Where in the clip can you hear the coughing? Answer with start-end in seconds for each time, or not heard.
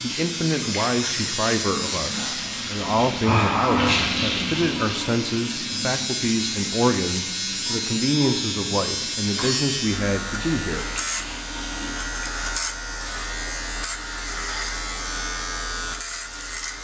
not heard.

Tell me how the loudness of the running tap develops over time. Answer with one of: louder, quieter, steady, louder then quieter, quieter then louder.
louder then quieter.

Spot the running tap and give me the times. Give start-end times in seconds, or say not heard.
0.0-12.1.